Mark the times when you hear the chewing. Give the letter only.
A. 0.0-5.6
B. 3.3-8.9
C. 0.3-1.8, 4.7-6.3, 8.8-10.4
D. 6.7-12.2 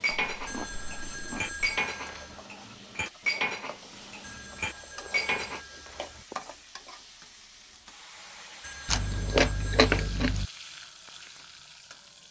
C.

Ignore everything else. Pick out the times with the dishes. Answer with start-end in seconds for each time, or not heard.
0.0-5.6.